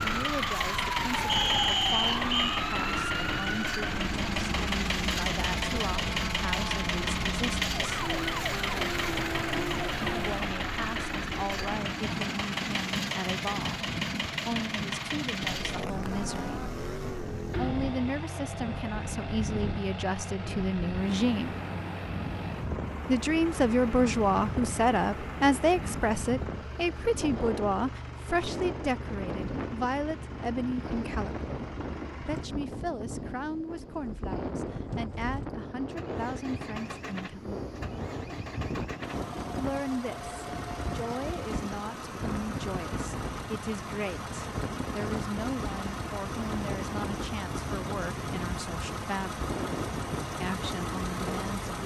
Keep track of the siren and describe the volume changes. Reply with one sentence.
The volume of the siren stays about the same.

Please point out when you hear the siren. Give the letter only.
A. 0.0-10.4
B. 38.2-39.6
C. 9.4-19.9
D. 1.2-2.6
A.